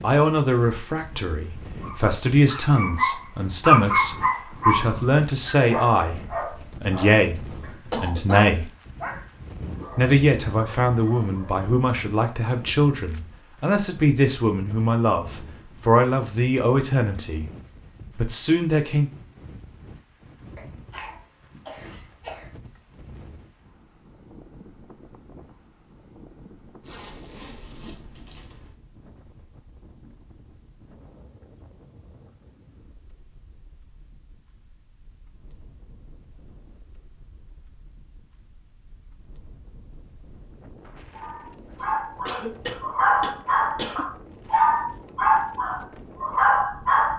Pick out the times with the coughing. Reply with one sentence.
You can hear the coughing from 7.3 to 8.5 s, from 20.6 to 22.5 s and from 42.2 to 44.0 s.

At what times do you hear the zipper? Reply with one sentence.
The zipper can be heard from 26.8 to 28.8 s.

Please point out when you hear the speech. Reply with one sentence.
The speech can be heard from 0.0 to 8.7 s, from 9.9 to 17.4 s and from 18.1 to 19.1 s.